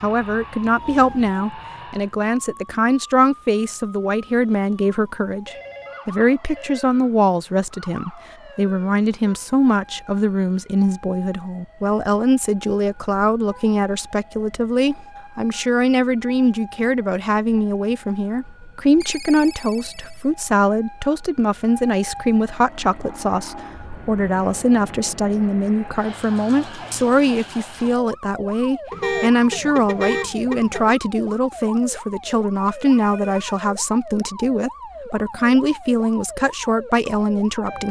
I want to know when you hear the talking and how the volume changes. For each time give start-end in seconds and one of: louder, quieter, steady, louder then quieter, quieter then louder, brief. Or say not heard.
0.0-37.8 steady.